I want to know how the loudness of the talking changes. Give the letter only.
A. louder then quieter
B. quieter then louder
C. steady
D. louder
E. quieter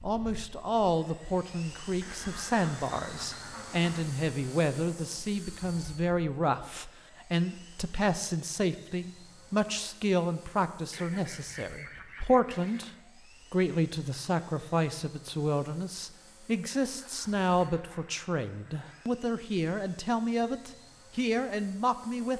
C.